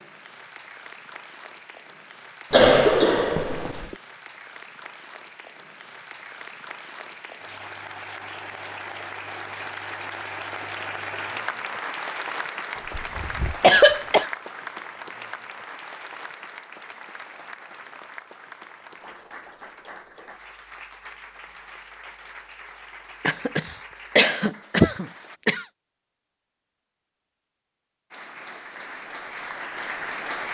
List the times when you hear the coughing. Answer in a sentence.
You can hear the coughing from 2.5 to 4.0 s, from 12.8 to 14.3 s and from 23.2 to 25.6 s.